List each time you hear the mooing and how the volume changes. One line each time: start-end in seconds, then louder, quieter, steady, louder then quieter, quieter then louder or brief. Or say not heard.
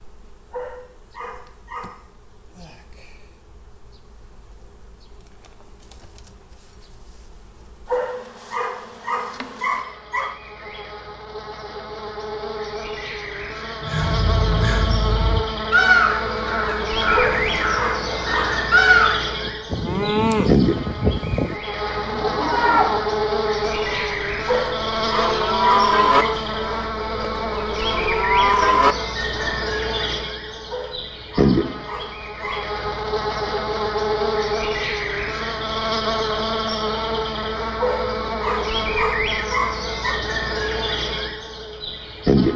19.4-29.4 quieter then louder.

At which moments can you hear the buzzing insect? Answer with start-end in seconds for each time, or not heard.
0.0-42.5.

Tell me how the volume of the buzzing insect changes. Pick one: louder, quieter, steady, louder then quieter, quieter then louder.
louder.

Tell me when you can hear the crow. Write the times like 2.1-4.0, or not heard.
13.8-19.2.